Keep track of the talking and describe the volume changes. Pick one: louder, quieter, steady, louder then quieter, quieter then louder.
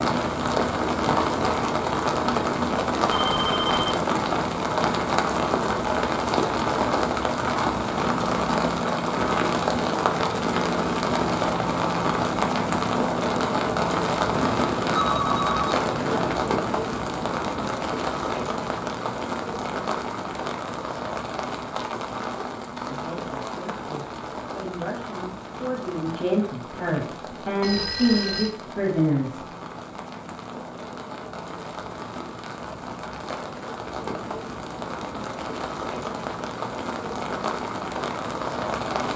louder.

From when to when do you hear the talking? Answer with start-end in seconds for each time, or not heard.
22.9-29.4.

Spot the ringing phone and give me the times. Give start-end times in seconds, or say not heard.
3.1-3.9, 14.3-16.4, 27.6-28.6.